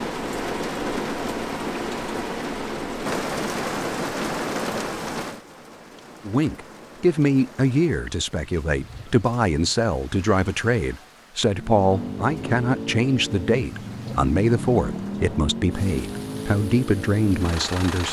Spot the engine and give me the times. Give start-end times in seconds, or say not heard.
11.6-18.0.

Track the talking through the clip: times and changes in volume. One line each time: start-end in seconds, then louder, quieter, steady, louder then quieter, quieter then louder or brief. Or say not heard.
6.2-18.0 steady.